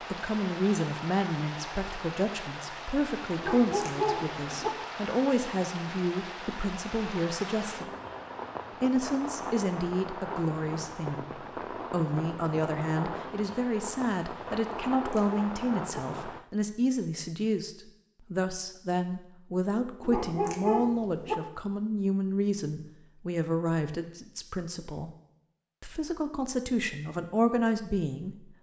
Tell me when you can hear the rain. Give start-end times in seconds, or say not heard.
0.0-16.4.